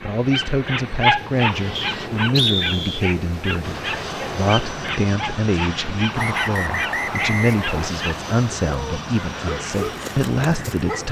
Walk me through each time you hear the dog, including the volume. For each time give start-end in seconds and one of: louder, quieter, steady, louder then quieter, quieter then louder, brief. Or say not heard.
0.0-11.0 quieter.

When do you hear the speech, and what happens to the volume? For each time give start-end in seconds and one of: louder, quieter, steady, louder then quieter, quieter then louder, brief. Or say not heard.
0.0-11.0 steady.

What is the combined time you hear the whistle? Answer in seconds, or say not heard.
3 s.